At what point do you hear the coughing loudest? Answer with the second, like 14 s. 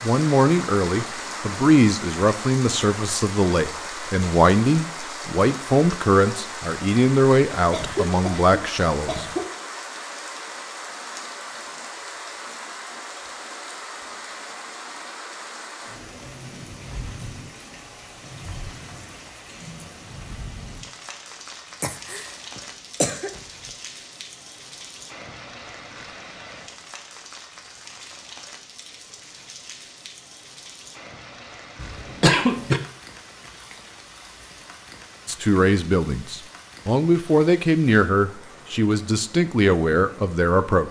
32 s.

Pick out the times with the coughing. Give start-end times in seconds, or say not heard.
7.7-9.5, 21.8-23.4, 31.8-32.8.